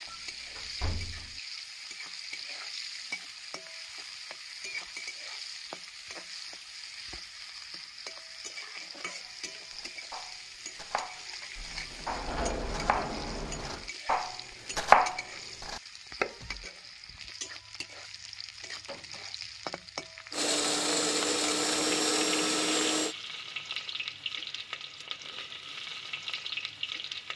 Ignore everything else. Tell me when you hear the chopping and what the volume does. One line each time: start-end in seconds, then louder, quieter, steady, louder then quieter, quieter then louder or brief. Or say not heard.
9.2-16.6 louder then quieter.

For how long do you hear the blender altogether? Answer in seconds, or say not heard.
3 s.